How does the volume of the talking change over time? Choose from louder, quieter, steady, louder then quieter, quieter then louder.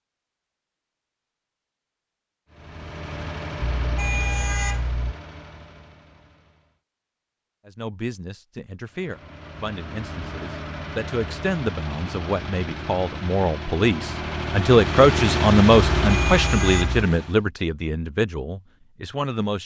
louder then quieter.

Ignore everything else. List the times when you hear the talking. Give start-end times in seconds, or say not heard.
7.7-19.6.